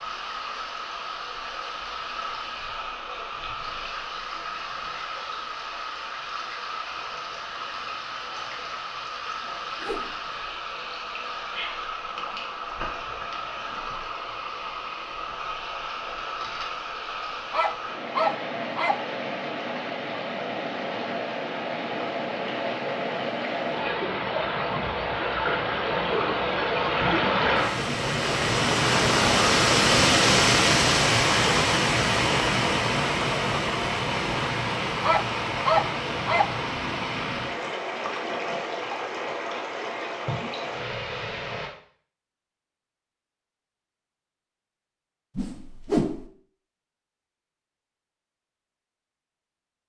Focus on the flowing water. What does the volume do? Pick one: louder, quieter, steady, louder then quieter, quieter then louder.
louder then quieter.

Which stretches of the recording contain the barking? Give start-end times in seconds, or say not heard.
17.5-19.0, 35.0-36.5.